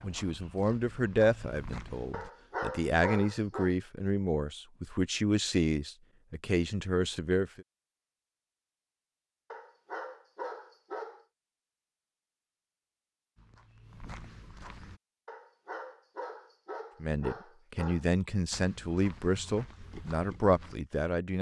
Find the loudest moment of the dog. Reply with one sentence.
The loudest moment of the dog is at 3 seconds.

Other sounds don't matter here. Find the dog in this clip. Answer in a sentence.
You can hear the dog from 2.1 to 3.8 s, from 9.5 to 11.2 s and from 15.2 to 18.1 s.